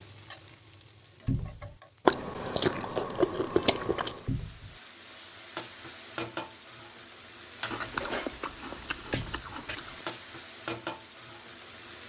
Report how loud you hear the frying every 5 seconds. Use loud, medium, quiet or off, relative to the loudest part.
medium, loud, loud.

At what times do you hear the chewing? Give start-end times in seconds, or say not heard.
2.0-4.3, 7.7-10.1.